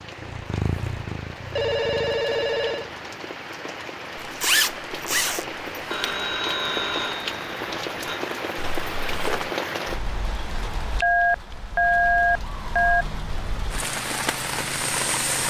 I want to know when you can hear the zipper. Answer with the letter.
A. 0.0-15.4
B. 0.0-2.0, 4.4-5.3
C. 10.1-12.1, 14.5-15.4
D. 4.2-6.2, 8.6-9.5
D.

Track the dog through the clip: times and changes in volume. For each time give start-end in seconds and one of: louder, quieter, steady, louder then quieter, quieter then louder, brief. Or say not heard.
not heard.